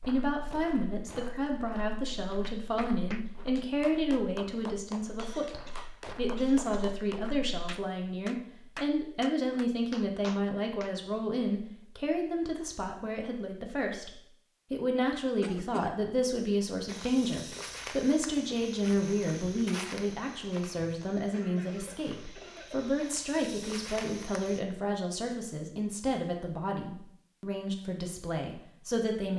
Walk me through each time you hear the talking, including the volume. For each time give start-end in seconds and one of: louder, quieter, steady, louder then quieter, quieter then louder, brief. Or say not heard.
0.1-29.3 steady.